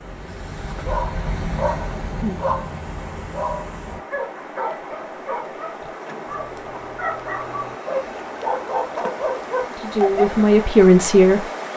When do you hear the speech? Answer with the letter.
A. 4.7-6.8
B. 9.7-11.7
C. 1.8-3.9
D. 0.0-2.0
B.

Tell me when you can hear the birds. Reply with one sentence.
You can't hear the birds here.